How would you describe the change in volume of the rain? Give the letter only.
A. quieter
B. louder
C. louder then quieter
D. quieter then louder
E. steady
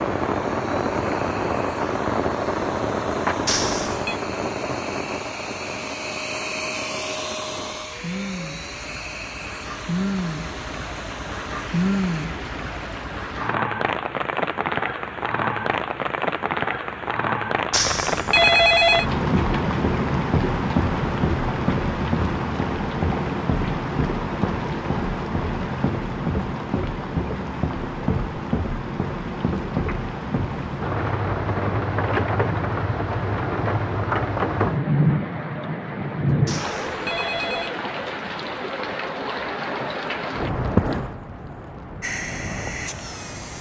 E.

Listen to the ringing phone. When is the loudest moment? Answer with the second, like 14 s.
19 s.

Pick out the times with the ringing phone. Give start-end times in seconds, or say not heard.
3.5-4.2, 17.7-19.1, 36.5-37.8.